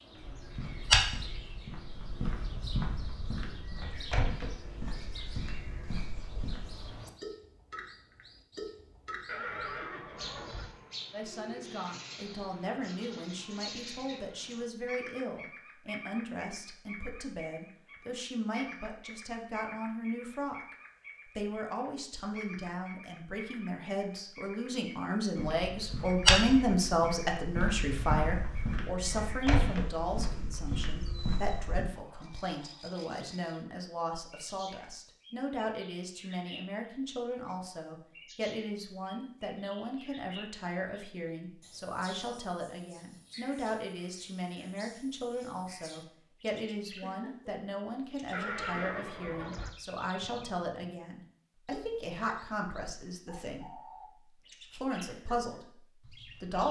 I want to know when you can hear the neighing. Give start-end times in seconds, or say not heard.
9.2-10.7, 48.3-49.7.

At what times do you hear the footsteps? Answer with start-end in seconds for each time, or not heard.
0.1-7.0, 25.4-31.9.